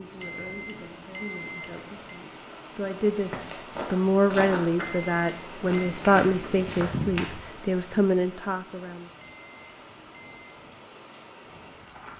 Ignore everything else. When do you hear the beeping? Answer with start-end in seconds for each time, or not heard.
0.2-2.2, 4.8-6.0, 9.2-10.7.